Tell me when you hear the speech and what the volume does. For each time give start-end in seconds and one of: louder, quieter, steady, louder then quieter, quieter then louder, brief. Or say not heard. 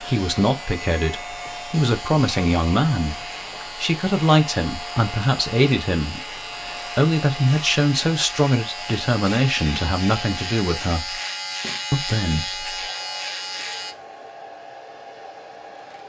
0.0-11.2 steady
11.9-12.7 brief.